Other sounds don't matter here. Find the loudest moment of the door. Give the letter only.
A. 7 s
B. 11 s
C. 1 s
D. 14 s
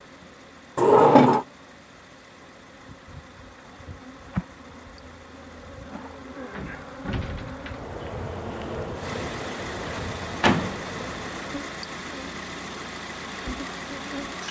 C.